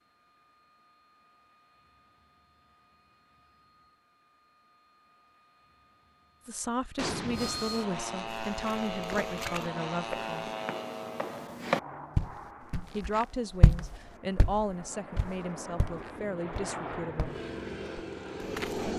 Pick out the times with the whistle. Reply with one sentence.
The whistle can't be heard in this clip.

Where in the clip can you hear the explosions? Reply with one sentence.
The explosions can be heard from 7.0 to 7.8 s.